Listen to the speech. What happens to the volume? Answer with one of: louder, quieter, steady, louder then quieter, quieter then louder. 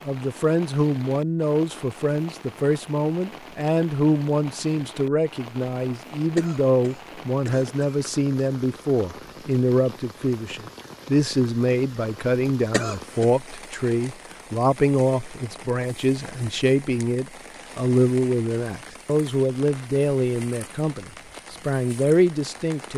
steady.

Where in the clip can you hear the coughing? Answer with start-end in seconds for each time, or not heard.
6.3-8.0, 12.7-13.3.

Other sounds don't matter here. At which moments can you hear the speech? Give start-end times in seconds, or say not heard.
0.1-22.9.